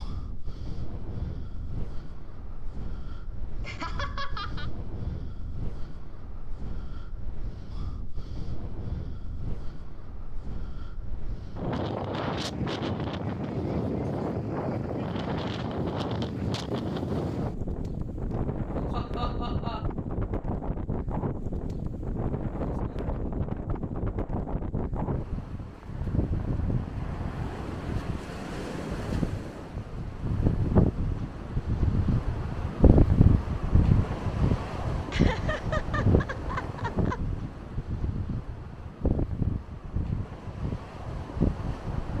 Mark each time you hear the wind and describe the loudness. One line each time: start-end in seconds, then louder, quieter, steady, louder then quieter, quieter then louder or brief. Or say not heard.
0.0-42.1 louder.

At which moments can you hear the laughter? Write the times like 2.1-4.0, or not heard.
3.6-4.7, 18.3-19.9, 35.1-37.2.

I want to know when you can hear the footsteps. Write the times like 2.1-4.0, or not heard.
not heard.